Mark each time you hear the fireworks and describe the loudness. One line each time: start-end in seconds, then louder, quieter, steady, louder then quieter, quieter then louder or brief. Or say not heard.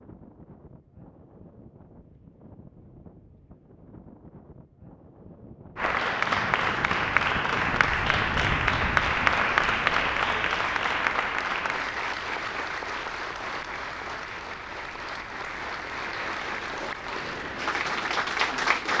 not heard.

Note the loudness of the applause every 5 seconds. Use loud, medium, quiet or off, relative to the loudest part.
off, loud, medium, medium.